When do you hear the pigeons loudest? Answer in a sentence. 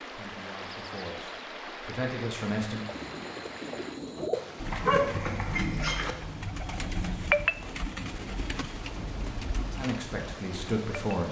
The volume of the pigeons peaks at 7 seconds.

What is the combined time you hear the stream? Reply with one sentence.
The stream can be heard for 11 seconds in total.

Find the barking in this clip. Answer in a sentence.
The barking can be heard from 4.7 to 6.2 s.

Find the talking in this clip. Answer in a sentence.
You can hear the talking from 0.0 to 2.8 s and from 9.8 to 11.2 s.